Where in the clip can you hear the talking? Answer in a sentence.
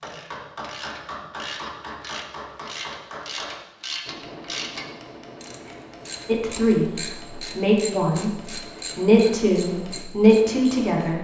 You can hear the talking from 6.2 to 6.9 s and from 7.5 to 11.1 s.